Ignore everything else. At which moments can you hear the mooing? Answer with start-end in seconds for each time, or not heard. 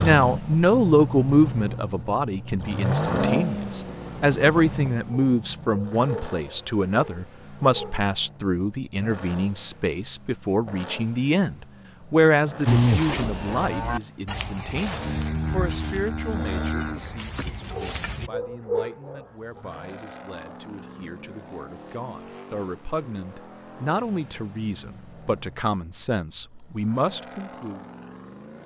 12.7-18.3.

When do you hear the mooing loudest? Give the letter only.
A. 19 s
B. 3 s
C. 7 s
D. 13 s
D.